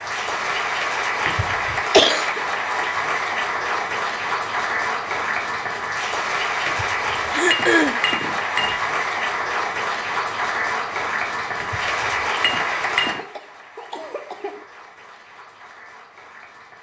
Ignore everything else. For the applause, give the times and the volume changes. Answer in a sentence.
You can hear the applause from 0.0 to 16.7 s, getting quieter.